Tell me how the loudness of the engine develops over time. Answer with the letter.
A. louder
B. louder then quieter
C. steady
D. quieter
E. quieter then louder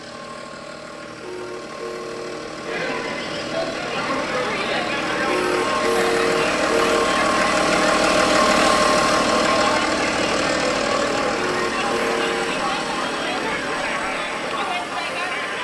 B.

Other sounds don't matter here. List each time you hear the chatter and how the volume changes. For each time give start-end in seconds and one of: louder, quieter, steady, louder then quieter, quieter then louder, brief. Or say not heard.
2.6-15.5 steady.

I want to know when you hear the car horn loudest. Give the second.
6 s.